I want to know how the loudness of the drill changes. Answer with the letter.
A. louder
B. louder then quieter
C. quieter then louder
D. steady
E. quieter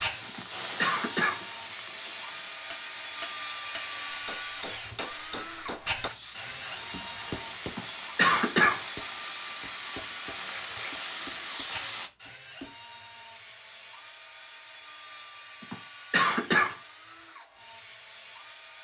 E.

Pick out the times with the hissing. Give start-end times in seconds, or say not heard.
0.0-4.2, 5.9-12.1.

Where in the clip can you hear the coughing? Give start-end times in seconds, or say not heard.
0.2-1.4, 7.7-8.8, 15.6-16.8.